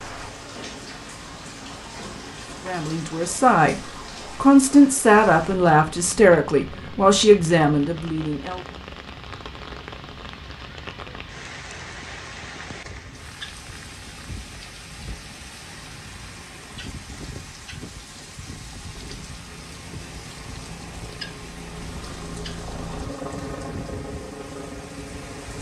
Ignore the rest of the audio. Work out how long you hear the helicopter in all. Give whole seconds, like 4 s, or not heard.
7 s.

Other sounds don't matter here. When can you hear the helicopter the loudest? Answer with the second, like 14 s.
23 s.